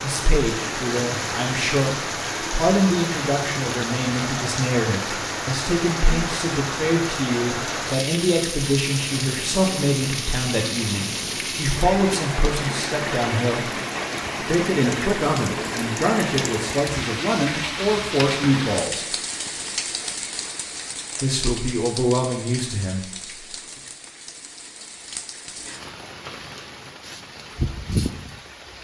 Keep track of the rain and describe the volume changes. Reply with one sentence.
The volume of the rain goes down.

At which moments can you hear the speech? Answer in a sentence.
The speech can be heard from 0.0 to 13.7 s, from 14.4 to 19.1 s and from 21.2 to 23.4 s.